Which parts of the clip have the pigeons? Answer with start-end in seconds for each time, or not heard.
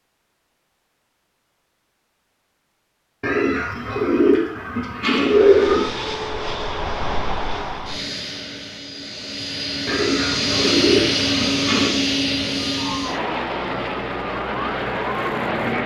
3.2-5.9, 9.8-11.9.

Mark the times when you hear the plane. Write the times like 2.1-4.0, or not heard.
5.2-15.8.